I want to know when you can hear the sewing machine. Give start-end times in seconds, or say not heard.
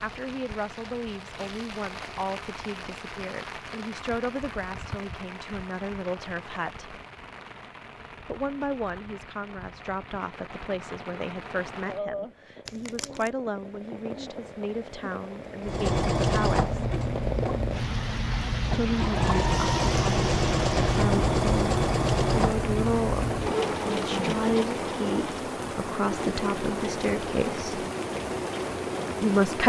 15.6-29.4.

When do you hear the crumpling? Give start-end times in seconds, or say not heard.
12.7-13.3.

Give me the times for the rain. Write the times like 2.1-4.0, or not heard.
0.0-29.6.